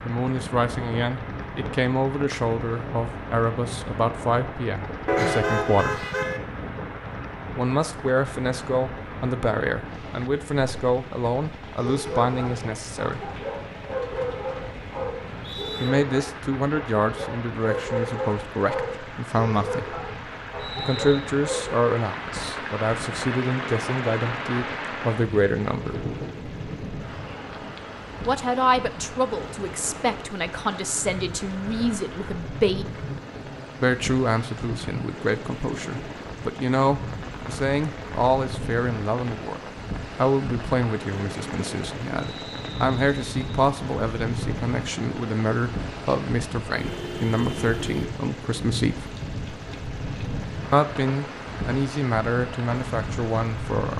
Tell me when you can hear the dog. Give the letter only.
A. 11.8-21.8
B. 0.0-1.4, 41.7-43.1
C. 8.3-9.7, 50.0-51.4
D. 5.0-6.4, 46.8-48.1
A.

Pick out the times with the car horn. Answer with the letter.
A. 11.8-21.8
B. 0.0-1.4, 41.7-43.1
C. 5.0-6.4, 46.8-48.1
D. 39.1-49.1
C.